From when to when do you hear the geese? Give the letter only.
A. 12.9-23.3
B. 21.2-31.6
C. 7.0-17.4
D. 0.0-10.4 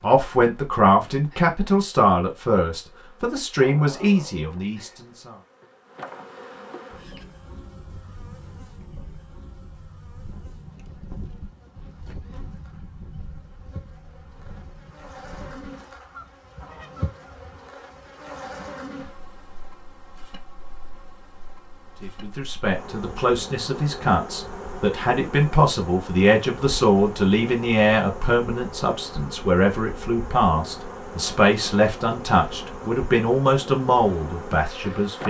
C.